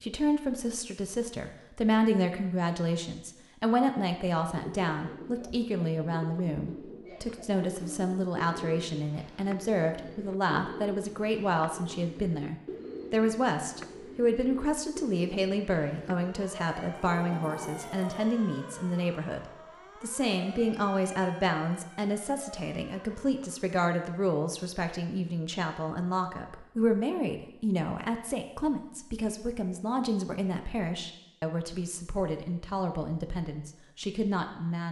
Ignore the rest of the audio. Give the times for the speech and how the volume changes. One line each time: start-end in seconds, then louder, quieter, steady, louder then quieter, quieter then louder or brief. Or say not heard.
0.0-34.8 steady.